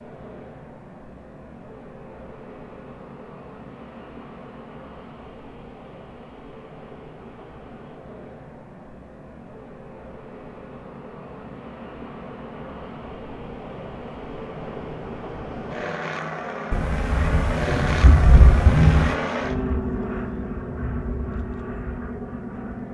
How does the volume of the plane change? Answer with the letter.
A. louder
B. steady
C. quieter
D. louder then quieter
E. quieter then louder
A.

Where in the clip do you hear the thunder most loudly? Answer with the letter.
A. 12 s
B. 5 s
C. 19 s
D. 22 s
C.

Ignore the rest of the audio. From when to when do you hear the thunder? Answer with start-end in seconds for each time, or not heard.
16.7-19.1.